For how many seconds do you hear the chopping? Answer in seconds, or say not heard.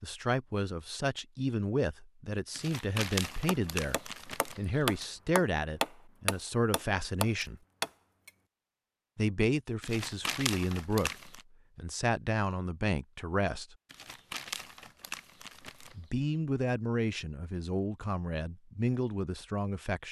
5 s.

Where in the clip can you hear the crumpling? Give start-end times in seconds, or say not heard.
2.5-5.0, 9.8-11.4, 13.9-16.1.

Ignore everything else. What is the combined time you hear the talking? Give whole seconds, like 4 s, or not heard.
16 s.